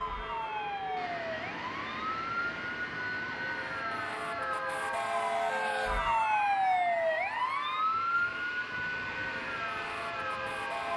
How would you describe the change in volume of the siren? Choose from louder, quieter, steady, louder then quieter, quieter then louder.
louder then quieter.